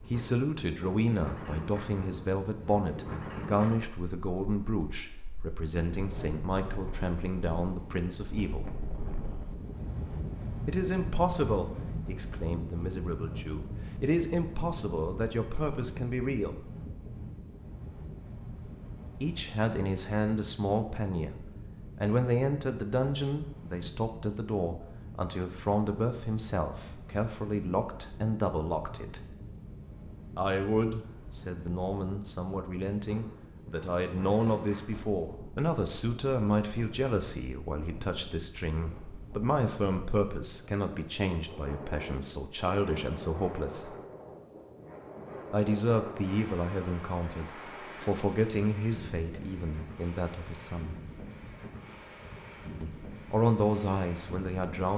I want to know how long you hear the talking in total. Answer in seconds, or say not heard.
46 s.